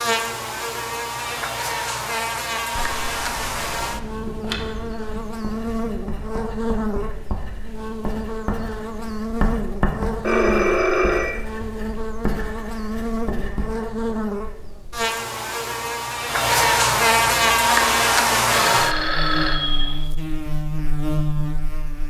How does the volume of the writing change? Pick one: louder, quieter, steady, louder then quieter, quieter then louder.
louder then quieter.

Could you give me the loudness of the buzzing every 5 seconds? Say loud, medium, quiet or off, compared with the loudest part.
medium, medium, medium, loud, medium.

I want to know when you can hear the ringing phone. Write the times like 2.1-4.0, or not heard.
2.8-5.0, 10.2-11.4, 18.5-20.0.